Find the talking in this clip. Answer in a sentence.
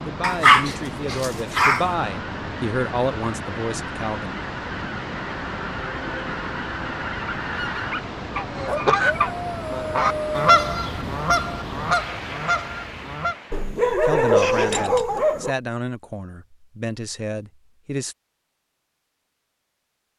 You can hear the talking from 0.0 to 4.3 s and from 14.0 to 18.1 s.